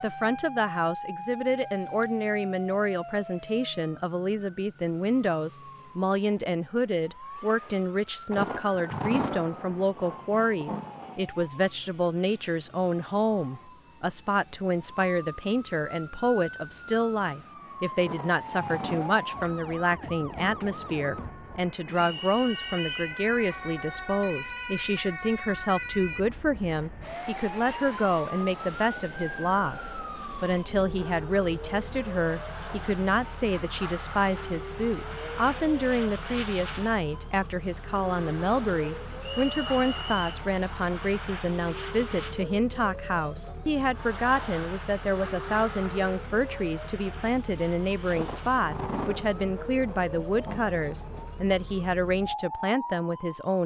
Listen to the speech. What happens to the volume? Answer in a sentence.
The volume of the speech stays about the same.